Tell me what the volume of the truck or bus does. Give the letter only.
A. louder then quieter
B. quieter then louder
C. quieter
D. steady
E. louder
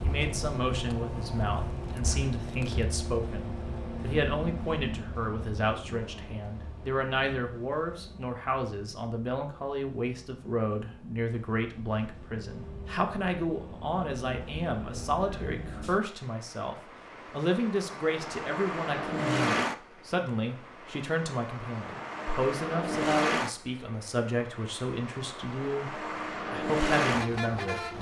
B.